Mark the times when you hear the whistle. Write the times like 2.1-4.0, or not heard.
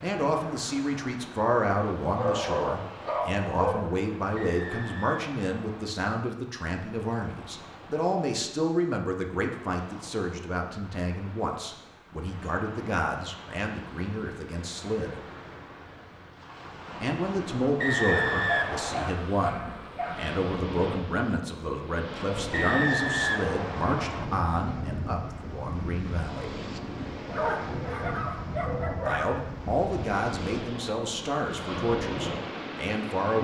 4.3-6.0, 17.8-19.1, 22.5-24.2.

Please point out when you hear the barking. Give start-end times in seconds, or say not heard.
2.0-3.9, 18.1-20.4, 27.2-29.2.